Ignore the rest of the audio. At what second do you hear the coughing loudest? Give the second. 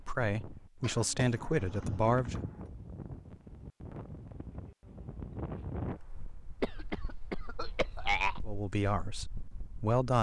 8 s.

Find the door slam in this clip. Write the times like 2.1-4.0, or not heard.
not heard.